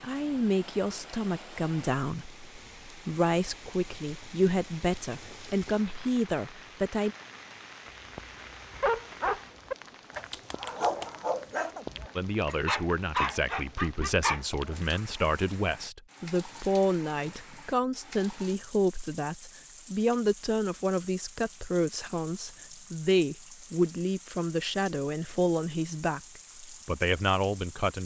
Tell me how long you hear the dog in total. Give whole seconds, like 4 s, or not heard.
7 s.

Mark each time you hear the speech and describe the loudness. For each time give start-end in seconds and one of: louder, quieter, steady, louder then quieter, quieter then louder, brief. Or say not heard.
0.0-7.2 steady
12.2-28.0 steady.